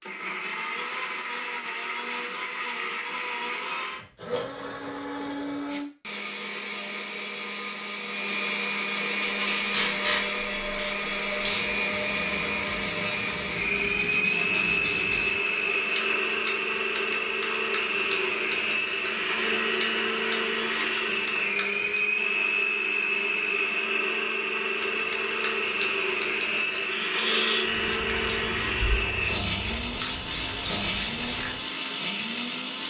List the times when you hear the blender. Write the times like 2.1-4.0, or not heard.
0.0-32.8.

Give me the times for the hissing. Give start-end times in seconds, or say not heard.
9.2-22.0, 24.8-32.8.